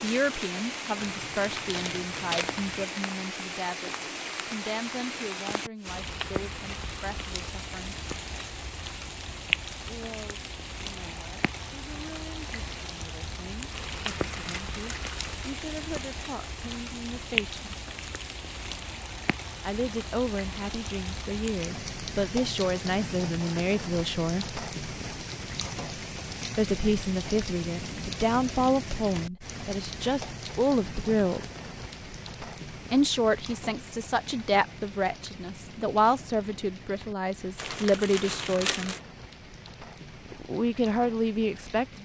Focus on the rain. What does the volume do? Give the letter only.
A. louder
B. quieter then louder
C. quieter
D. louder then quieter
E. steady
C.